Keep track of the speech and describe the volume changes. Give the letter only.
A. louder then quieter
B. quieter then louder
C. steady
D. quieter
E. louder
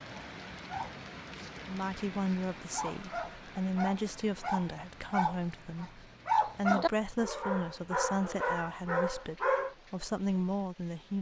C.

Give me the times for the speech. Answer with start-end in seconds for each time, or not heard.
1.6-11.1.